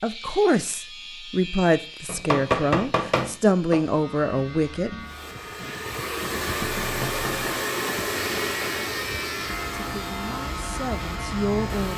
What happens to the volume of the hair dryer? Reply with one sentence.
The loudness of the hair dryer goes down.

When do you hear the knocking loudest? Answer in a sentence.
The volume of the knocking peaks at 3 seconds.